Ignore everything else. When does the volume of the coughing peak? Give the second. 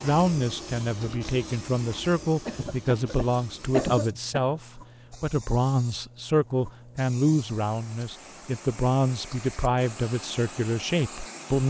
4 s.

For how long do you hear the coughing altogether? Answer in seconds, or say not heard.
2 s.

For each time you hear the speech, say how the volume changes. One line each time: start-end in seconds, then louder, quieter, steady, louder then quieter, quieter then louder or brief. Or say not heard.
0.0-11.6 steady.